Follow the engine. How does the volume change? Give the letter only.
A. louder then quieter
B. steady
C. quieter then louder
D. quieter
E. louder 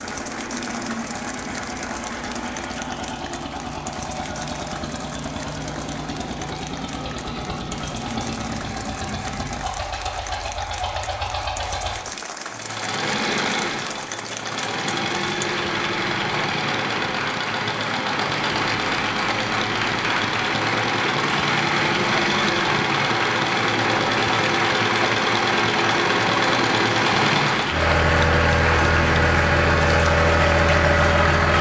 E.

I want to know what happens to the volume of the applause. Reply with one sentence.
The loudness of the applause goes up.